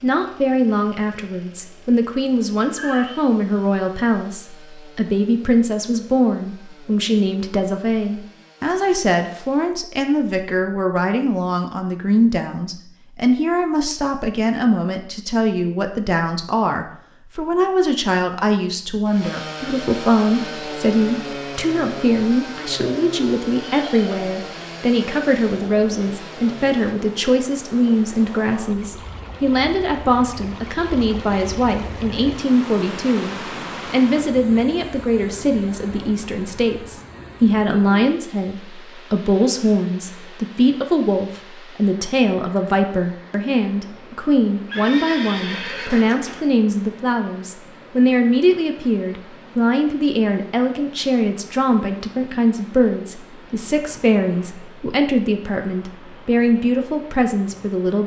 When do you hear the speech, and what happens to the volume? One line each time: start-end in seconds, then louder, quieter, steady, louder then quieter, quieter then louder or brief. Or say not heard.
0.0-58.0 steady.